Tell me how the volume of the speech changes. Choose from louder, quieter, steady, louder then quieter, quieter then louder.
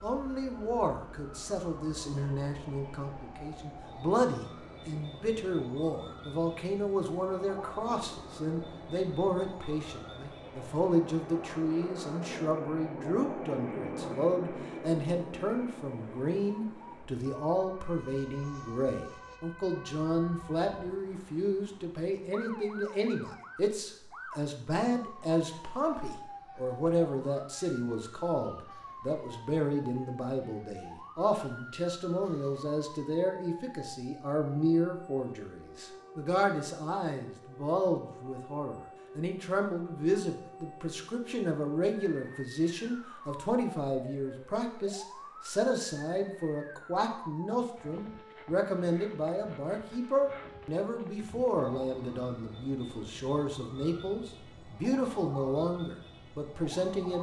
steady.